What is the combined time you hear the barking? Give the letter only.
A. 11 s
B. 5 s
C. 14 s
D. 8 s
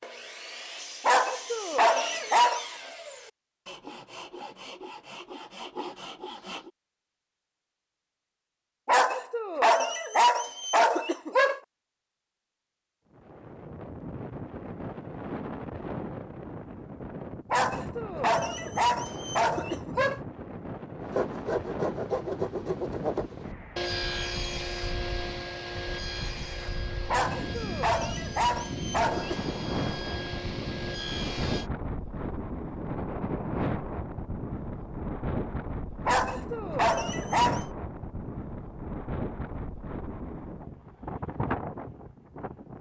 A.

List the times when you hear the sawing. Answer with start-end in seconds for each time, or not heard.
0.0-6.7, 21.0-31.7.